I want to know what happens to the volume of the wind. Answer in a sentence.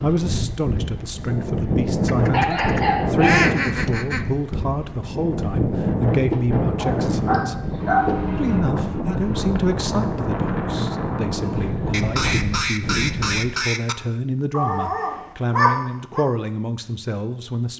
The loudness of the wind stays about the same.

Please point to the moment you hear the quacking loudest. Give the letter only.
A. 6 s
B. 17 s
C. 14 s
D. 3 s
D.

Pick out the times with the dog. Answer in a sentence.
The dog can be heard from 2.3 to 3.5 s, from 6.3 to 8.2 s and from 14.5 to 16.2 s.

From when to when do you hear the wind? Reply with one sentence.
You can hear the wind from 0.0 to 13.5 s.